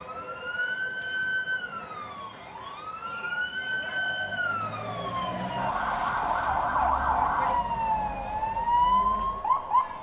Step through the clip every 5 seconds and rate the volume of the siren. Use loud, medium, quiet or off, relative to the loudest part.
medium, loud.